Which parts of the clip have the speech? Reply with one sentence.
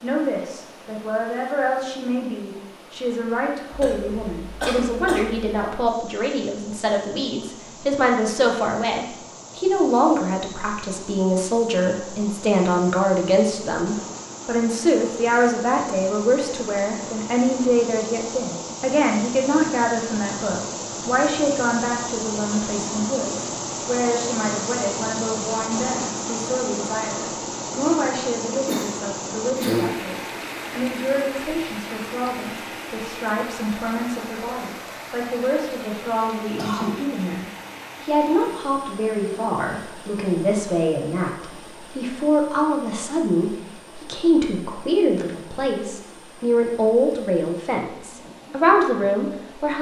The speech can be heard from 0.0 to 49.7 s.